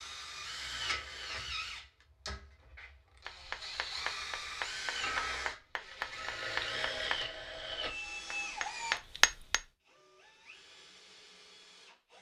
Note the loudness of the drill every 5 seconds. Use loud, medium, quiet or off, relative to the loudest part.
loud, loud, quiet.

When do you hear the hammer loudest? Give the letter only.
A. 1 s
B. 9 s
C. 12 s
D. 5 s
B.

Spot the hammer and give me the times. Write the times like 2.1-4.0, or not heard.
3.2-9.6.